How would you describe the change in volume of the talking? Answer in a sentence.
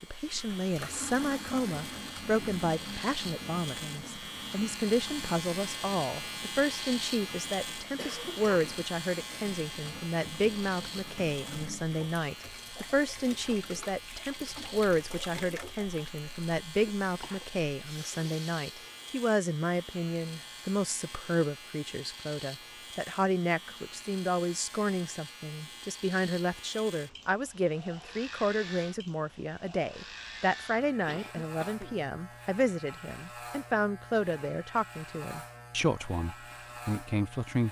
The loudness of the talking stays about the same.